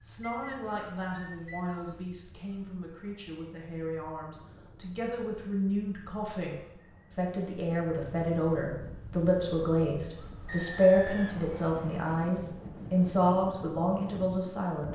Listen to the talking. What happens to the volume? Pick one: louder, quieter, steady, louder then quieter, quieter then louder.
louder.